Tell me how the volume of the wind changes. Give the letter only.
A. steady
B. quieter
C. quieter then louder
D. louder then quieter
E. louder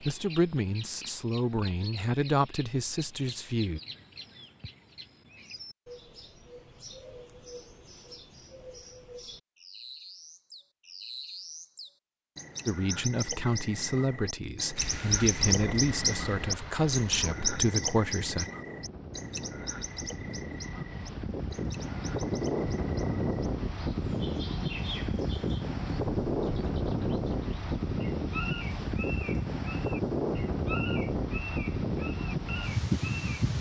E.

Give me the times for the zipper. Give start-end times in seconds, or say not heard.
not heard.